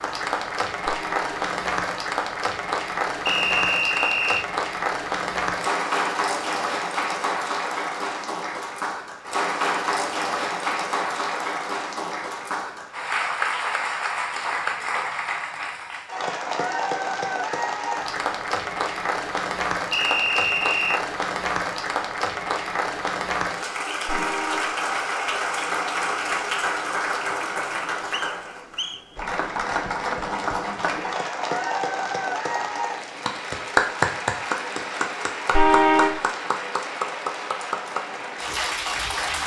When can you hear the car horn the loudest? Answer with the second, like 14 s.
36 s.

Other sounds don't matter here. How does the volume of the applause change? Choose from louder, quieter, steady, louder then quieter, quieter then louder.
steady.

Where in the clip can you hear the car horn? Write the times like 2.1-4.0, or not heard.
0.8-1.2, 24.1-24.8, 35.5-36.2.